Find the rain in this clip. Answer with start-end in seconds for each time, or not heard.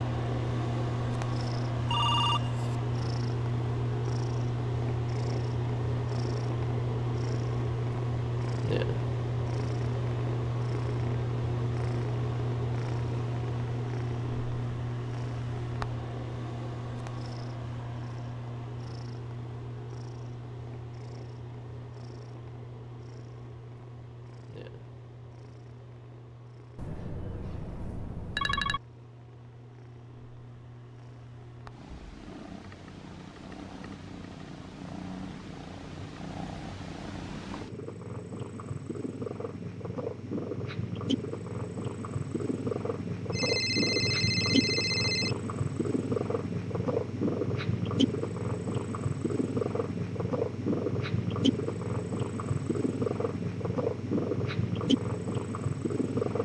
not heard.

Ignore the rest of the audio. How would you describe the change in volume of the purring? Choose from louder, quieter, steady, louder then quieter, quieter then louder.
quieter then louder.